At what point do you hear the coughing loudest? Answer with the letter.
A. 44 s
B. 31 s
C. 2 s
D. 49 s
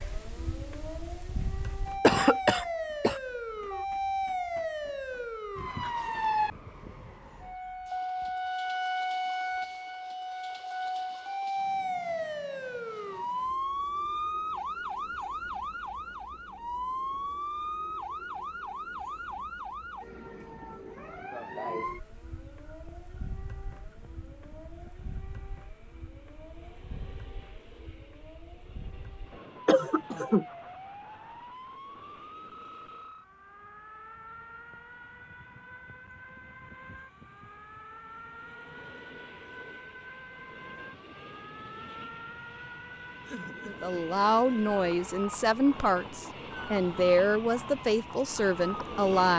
C.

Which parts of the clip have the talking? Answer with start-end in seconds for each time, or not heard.
43.6-49.3.